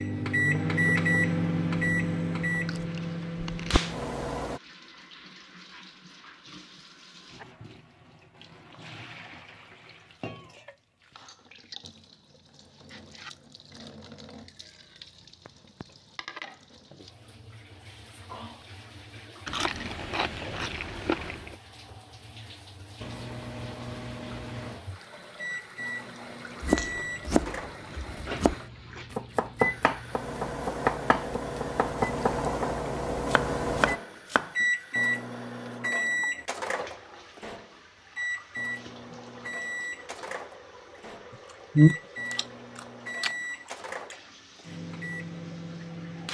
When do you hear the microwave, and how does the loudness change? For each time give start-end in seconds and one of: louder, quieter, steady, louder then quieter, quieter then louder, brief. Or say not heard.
0.0-4.6 quieter
22.9-46.2 louder then quieter.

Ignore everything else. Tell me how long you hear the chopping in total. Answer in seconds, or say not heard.
8 s.